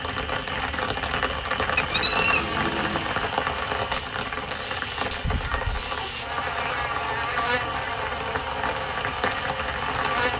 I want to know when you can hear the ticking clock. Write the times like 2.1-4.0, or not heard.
not heard.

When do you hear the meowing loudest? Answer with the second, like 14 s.
2 s.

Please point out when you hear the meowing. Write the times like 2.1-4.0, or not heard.
1.8-3.1, 5.2-6.2.